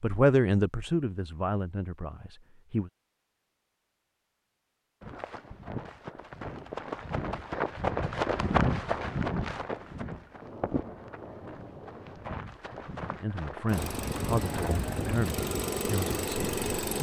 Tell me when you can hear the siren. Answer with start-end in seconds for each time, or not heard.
not heard.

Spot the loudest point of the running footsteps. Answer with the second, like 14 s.
9 s.